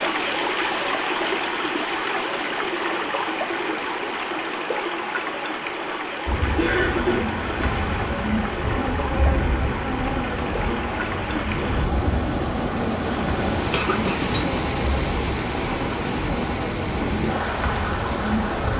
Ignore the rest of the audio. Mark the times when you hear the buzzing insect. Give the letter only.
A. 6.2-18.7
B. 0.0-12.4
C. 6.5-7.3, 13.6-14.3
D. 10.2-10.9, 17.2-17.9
A.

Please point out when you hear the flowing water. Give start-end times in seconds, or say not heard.
0.0-18.7.